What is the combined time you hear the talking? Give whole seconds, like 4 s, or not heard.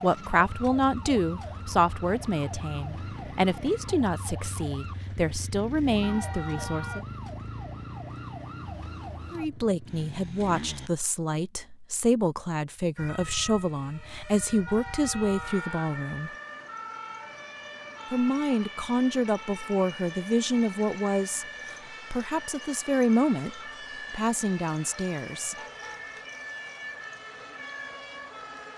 21 s.